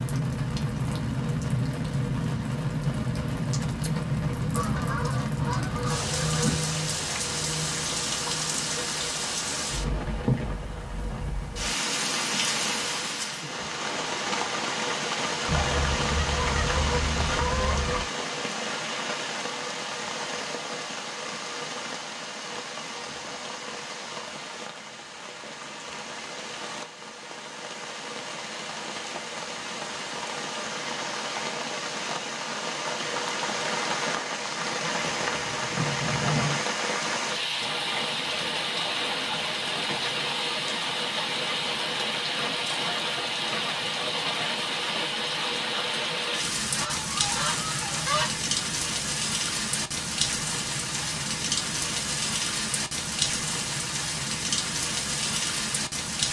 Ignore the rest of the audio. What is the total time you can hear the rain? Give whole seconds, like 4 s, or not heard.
56 s.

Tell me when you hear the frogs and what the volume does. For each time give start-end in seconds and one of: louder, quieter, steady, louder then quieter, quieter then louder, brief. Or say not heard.
not heard.